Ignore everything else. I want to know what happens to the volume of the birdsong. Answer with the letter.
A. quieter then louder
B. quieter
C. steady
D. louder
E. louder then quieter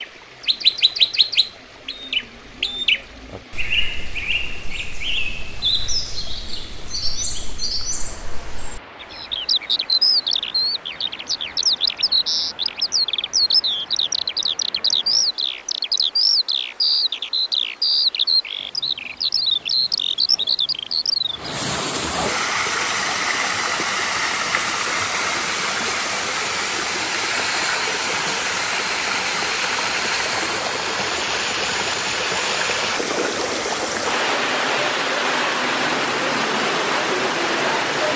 A.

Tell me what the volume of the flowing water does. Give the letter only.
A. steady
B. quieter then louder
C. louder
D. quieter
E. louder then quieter
C.